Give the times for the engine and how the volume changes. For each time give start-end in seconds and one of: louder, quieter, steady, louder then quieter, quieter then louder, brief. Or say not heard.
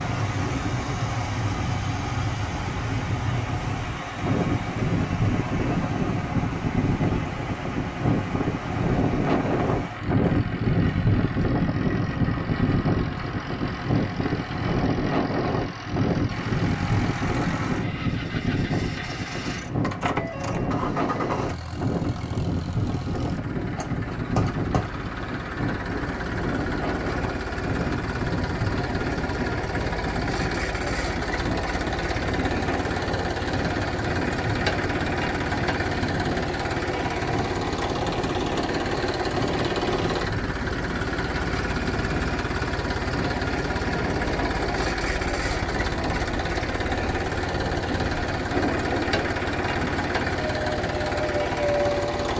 0.0-52.3 louder.